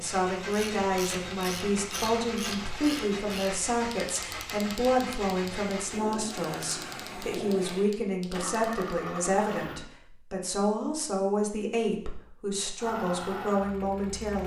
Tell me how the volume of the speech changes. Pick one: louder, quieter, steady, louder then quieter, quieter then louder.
steady.